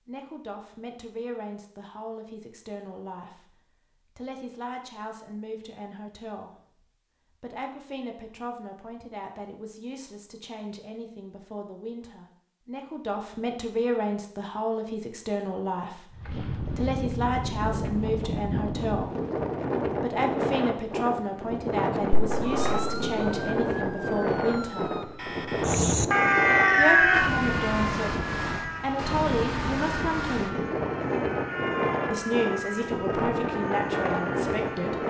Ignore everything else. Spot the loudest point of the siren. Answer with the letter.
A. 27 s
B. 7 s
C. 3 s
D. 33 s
A.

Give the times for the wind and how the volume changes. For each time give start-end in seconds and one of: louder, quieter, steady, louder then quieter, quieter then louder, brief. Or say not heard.
16.1-35.0 steady.